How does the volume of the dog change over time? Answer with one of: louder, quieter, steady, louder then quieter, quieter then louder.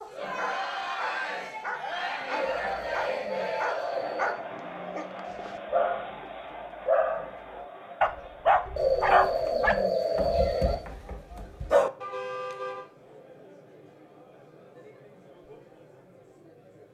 louder then quieter.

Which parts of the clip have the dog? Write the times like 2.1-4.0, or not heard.
0.0-11.9.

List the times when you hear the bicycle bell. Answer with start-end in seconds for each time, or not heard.
not heard.